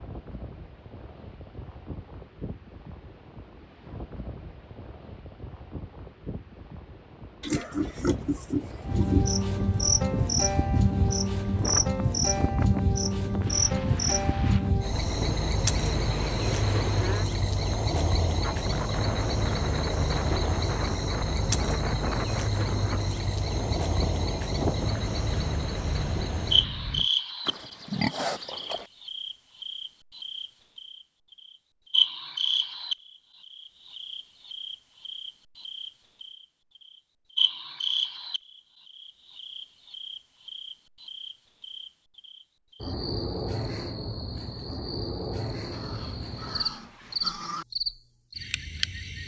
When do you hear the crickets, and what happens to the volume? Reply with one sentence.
You can hear the crickets from 8.8 to 49.2 s, getting quieter.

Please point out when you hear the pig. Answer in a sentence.
You can hear the pig from 7.4 to 9.2 s, from 27.4 to 28.9 s and from 45.7 to 47.6 s.